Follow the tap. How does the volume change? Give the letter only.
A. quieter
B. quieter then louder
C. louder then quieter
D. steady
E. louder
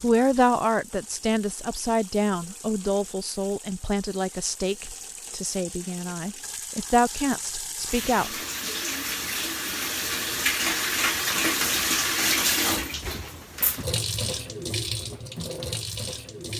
C.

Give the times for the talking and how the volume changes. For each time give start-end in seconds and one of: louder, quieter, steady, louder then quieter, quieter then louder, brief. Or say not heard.
0.0-8.3 quieter then louder.